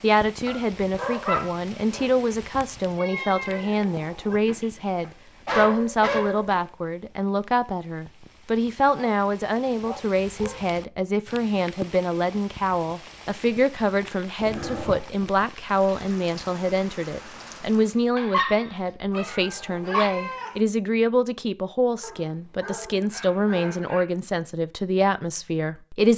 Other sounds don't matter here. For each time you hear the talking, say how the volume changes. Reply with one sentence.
You can hear the talking from 0.0 to 26.1 s, at a steady volume.